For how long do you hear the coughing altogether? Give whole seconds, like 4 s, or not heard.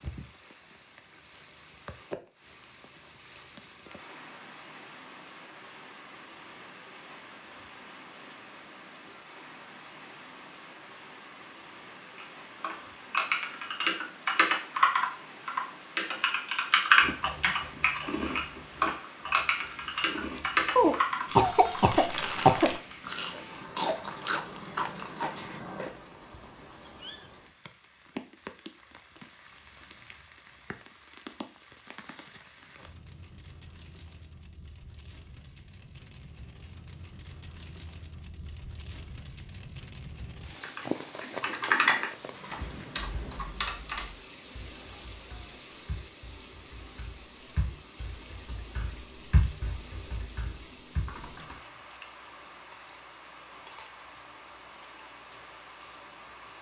2 s.